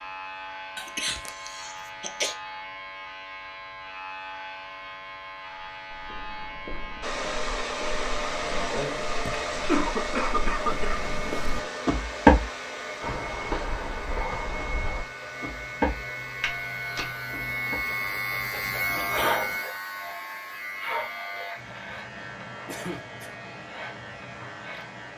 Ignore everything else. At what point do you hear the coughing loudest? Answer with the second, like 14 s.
10 s.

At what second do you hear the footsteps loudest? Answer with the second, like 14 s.
12 s.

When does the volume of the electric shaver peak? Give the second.
19 s.